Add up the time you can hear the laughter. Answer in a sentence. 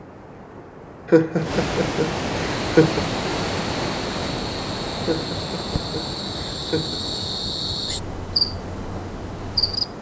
The laughter can be heard for 4 seconds in total.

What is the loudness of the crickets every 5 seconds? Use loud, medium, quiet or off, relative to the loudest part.
medium, loud.